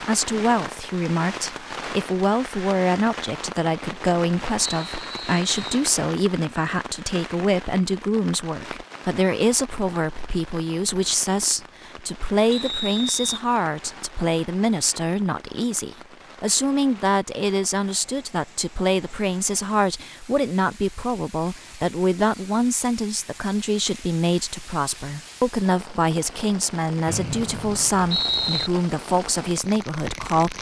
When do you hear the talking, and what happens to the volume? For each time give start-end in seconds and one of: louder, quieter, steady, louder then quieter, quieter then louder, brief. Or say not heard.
0.0-30.5 steady.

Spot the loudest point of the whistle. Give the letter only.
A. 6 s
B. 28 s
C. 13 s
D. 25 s
B.